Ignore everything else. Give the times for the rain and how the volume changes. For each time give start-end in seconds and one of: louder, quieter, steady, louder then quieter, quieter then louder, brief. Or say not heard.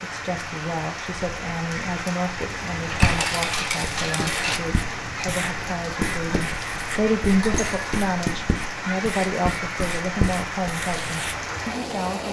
0.0-12.2 steady.